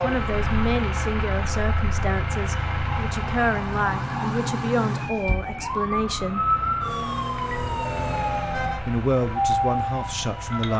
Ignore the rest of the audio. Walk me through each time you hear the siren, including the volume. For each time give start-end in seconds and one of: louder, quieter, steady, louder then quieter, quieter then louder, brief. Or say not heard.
0.0-10.7 louder.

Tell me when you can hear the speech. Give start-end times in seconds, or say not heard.
0.0-6.5, 8.8-10.7.